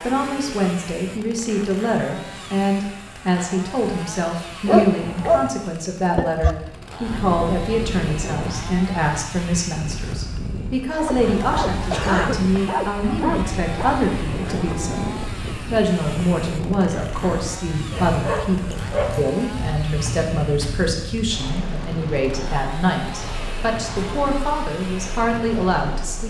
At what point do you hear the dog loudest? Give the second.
5 s.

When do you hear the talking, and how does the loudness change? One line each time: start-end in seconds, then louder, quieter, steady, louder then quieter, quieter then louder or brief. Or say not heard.
0.0-26.2 steady.